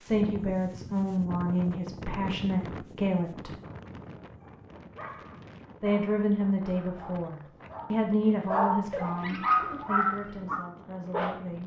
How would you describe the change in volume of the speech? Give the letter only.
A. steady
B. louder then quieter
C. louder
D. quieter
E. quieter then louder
D.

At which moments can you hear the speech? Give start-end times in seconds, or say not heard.
0.0-3.5, 5.8-11.6.